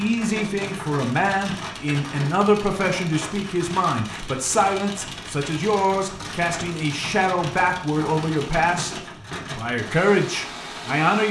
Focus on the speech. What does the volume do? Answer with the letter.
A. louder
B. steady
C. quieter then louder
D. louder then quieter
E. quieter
B.